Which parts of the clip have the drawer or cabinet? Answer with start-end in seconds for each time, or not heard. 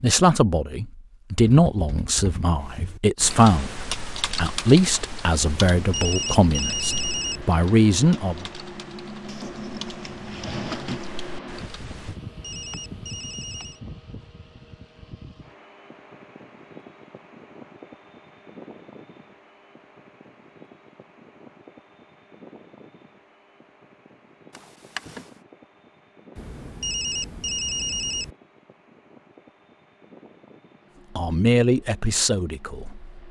9.2-11.1, 24.5-25.2.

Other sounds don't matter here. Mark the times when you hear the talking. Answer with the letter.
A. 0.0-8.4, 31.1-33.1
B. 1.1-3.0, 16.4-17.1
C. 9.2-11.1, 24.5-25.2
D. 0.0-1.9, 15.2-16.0
A.